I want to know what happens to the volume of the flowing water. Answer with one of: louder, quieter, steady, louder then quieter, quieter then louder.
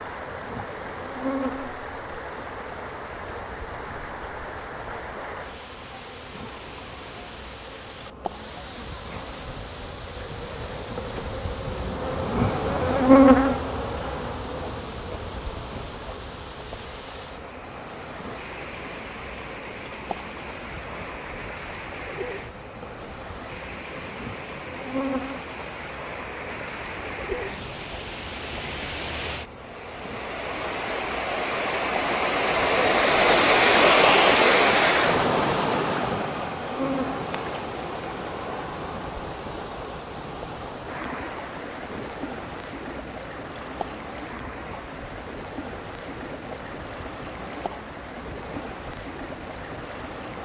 louder then quieter.